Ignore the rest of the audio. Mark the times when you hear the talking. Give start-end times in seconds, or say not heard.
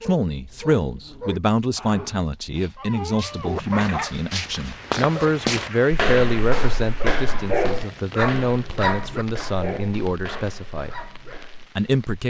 0.0-10.9, 11.8-12.2.